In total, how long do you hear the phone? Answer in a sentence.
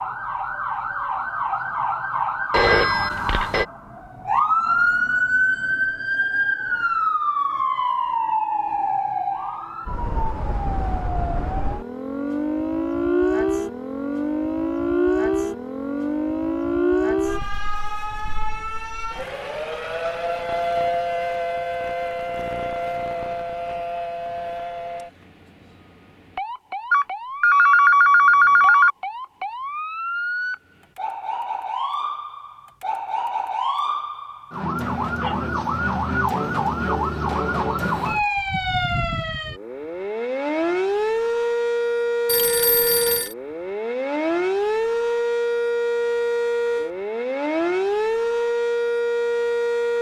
The phone can be heard for 4 seconds in total.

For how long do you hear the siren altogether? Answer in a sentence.
The siren can be heard for 50 seconds in total.